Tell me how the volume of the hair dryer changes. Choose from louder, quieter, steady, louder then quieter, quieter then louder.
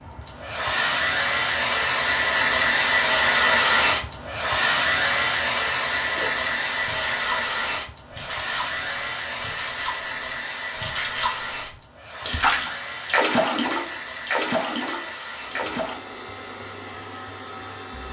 quieter.